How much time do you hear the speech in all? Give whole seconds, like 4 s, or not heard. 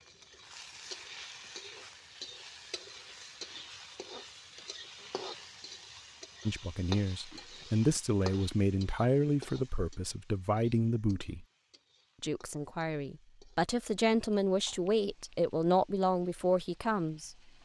10 s.